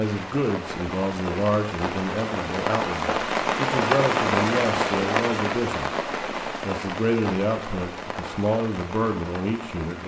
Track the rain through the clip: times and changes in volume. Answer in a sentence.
The rain can be heard from 0.0 to 10.0 s, getting louder then quieter.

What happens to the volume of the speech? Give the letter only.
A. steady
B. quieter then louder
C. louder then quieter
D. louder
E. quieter
A.